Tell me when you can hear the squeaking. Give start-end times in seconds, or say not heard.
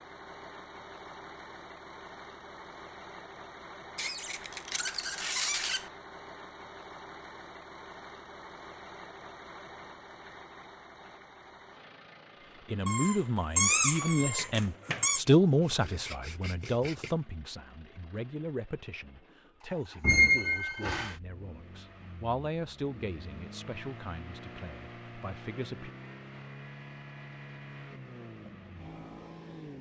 4.0-5.8, 12.8-15.2, 20.0-21.1.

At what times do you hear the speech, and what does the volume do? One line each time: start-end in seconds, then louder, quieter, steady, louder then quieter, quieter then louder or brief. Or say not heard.
12.7-25.9 quieter.